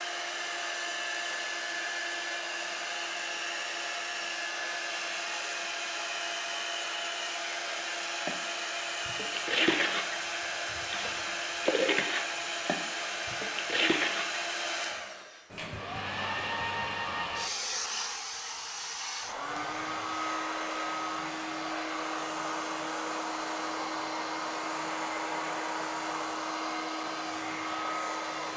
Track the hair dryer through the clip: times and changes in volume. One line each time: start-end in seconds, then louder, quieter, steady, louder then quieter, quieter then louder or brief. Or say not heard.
0.0-28.5 steady.